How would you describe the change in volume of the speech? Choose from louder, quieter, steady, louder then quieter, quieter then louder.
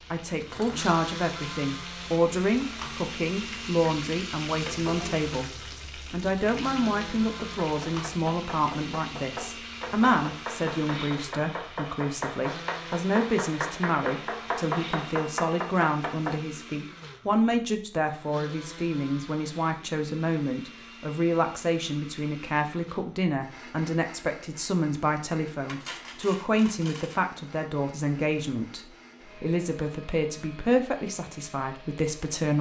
steady.